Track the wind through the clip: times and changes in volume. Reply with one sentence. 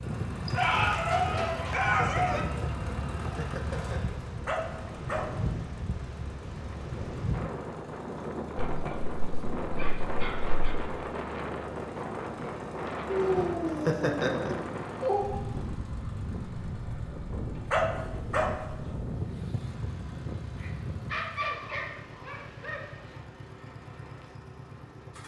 The wind can be heard from 0.0 to 21.2 s, at a steady volume.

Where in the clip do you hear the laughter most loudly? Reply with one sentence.
The volume of the laughter peaks at 14 seconds.